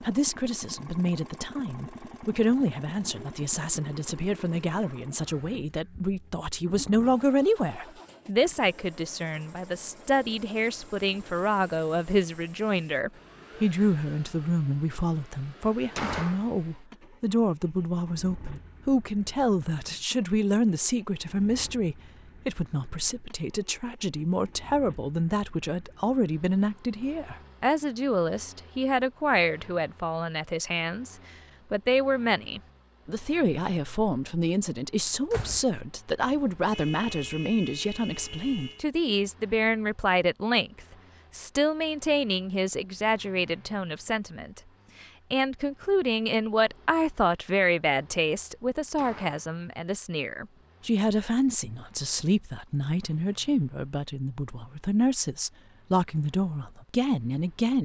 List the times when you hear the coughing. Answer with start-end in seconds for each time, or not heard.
not heard.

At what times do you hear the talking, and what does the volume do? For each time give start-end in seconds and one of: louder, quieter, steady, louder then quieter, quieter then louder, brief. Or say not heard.
0.0-57.7 steady.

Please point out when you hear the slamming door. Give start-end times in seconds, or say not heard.
15.8-16.5, 35.0-35.8, 48.8-49.5.